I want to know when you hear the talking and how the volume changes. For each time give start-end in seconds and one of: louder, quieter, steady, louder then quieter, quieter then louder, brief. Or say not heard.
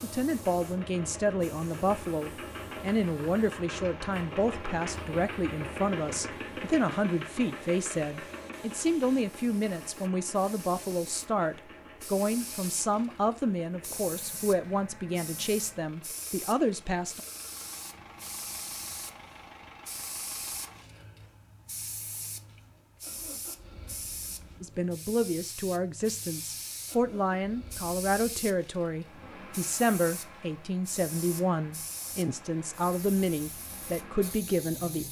0.0-17.2 steady
24.6-35.0 steady.